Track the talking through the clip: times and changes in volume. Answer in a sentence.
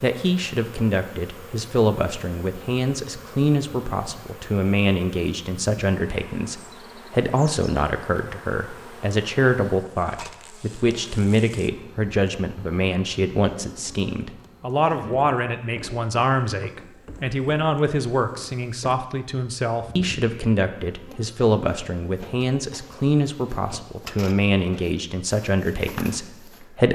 You can hear the talking from 0.0 to 26.8 s, at a steady volume.